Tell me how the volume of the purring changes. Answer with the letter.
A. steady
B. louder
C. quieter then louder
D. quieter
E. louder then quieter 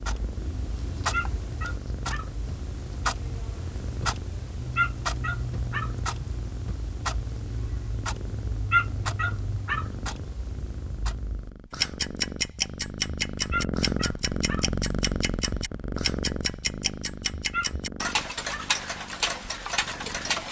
E.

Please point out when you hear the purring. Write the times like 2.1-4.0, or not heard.
0.0-20.4.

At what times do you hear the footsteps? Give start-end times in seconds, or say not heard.
not heard.